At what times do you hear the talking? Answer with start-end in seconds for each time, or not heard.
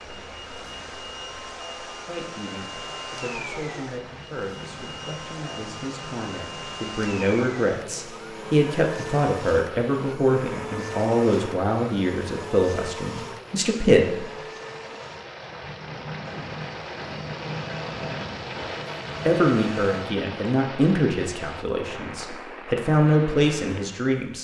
2.0-14.2, 19.2-24.3.